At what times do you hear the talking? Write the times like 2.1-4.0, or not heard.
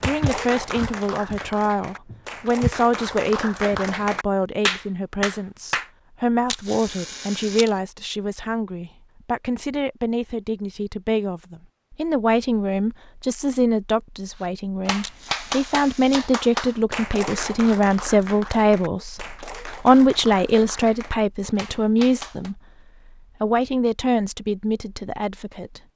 0.0-25.8.